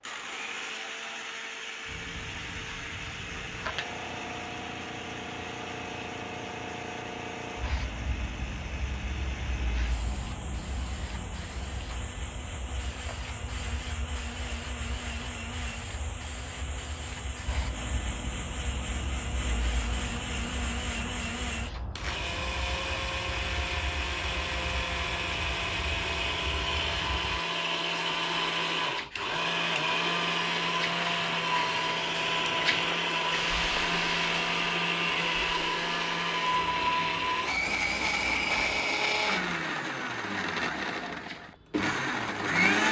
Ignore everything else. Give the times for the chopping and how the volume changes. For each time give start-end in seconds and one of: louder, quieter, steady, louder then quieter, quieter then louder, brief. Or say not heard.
not heard.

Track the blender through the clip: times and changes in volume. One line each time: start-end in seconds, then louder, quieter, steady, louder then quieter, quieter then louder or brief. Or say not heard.
0.0-42.8 louder.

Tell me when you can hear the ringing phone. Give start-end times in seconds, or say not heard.
not heard.